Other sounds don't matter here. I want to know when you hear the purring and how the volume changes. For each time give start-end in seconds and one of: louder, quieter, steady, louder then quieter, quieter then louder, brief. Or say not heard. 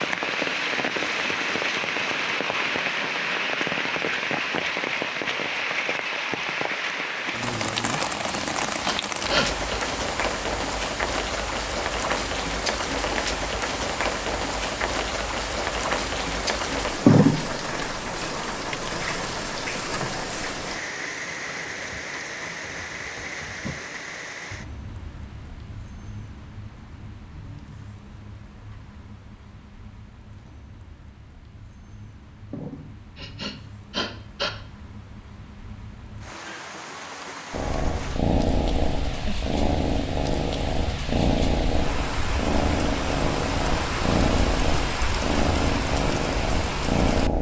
37.5-47.3 steady.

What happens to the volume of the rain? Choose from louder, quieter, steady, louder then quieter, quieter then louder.
quieter then louder.